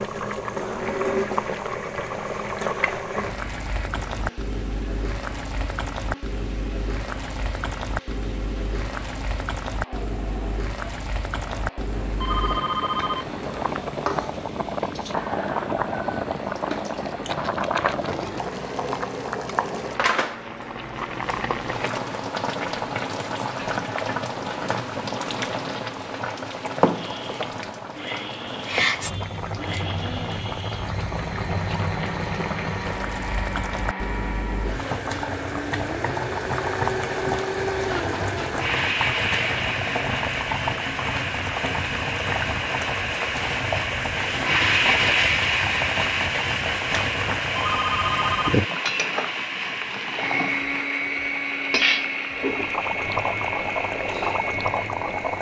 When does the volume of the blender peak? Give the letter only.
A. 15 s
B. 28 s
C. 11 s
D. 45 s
D.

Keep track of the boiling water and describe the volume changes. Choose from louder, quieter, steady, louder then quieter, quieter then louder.
steady.